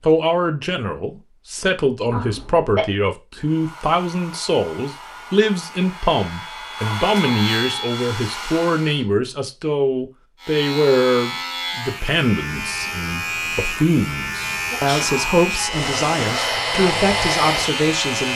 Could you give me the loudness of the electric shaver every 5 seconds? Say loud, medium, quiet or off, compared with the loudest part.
off, loud, loud, loud.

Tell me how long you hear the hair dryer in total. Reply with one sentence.
The hair dryer can be heard for 9 seconds in total.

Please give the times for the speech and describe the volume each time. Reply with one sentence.
You can hear the speech from 0.0 to 18.3 s, at a steady volume.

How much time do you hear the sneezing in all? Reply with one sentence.
You can hear the sneezing for 2 seconds altogether.